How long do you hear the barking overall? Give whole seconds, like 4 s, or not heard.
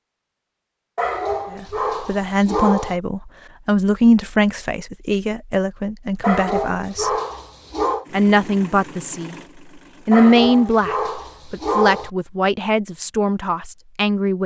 6 s.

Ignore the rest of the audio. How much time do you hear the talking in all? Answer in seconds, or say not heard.
11 s.